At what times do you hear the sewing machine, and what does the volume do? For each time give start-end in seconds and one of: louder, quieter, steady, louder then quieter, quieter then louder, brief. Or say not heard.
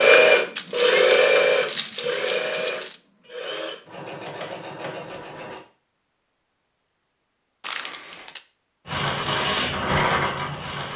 0.0-5.6 quieter
8.8-10.9 brief.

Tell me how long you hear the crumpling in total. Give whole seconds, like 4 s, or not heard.
3 s.